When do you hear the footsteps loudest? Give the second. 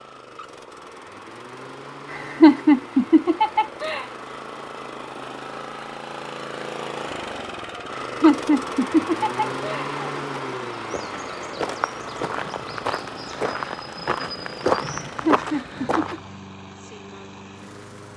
15 s.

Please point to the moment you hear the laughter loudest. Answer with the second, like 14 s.
3 s.